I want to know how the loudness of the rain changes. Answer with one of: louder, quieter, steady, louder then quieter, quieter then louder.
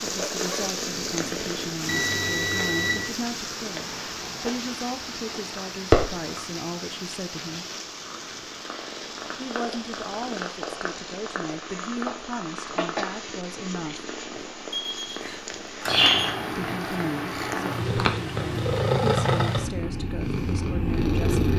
quieter.